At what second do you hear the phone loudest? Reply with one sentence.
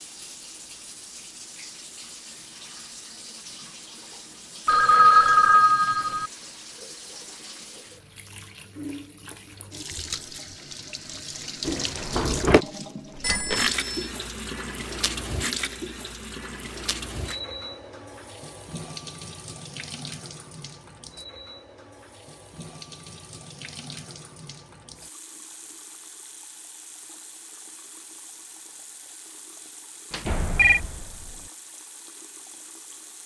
The volume of the phone peaks at 5 seconds.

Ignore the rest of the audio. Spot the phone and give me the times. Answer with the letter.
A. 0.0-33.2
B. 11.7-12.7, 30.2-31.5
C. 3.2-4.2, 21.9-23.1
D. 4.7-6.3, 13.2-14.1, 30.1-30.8
D.